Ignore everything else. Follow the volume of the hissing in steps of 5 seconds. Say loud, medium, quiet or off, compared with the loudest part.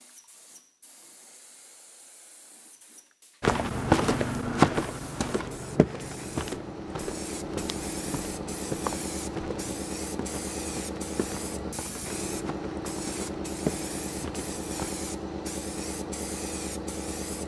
quiet, loud, loud, loud.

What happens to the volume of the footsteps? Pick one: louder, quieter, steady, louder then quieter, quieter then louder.
quieter then louder.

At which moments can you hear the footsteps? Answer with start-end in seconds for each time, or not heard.
3.4-14.9.